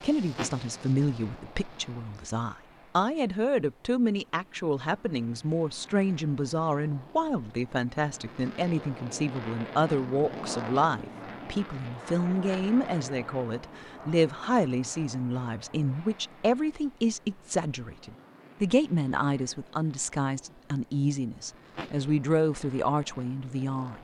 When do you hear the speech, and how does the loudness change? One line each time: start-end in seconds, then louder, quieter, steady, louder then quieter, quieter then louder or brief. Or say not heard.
0.0-23.9 steady.